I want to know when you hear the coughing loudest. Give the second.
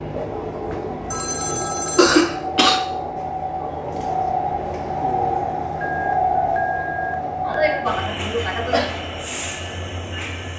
2 s.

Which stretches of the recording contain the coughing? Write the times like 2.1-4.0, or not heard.
1.9-2.8, 7.5-8.9.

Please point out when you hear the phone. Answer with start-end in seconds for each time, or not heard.
1.1-2.1, 5.8-7.8.